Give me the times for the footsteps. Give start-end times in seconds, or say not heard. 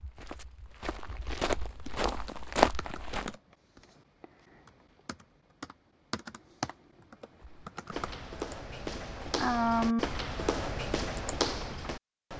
0.0-3.4, 7.4-12.3.